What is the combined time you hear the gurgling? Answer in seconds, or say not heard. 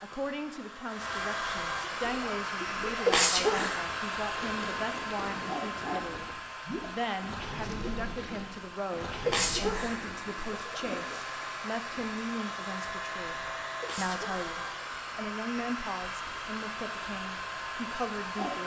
9 s.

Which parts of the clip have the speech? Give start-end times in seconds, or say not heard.
0.0-18.6.